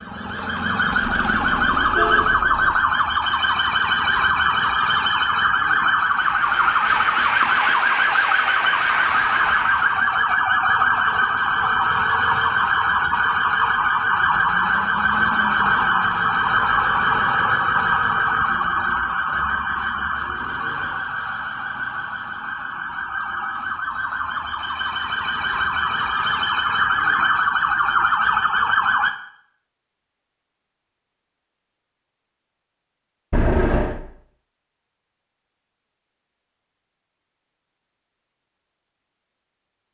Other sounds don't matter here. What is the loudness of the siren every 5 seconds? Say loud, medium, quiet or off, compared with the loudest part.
loud, loud, loud, loud, medium, loud, off, off.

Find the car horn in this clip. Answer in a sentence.
The car horn can be heard from 1.0 to 2.8 s and from 33.3 to 34.0 s.